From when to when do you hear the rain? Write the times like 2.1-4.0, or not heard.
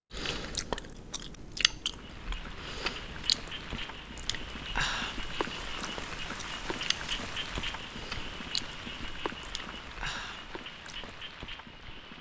1.8-12.1.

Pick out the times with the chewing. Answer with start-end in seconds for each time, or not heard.
0.1-11.2.